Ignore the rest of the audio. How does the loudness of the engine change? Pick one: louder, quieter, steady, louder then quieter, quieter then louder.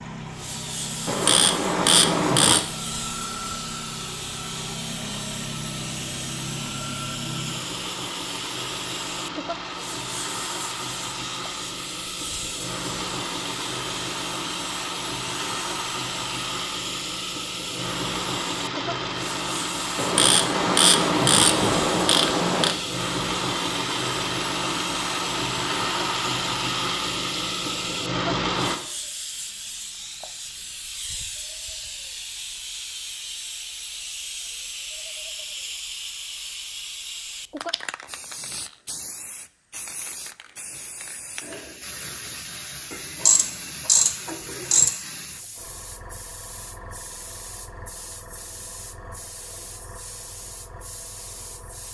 louder.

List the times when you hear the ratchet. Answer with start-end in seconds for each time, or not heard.
1.1-2.6, 19.9-22.8, 42.9-44.9.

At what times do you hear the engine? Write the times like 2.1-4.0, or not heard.
0.0-28.8.